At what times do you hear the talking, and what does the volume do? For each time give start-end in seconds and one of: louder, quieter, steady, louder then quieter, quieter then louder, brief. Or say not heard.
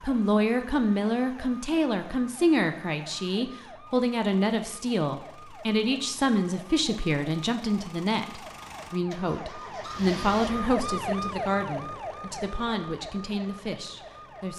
0.0-14.5 quieter.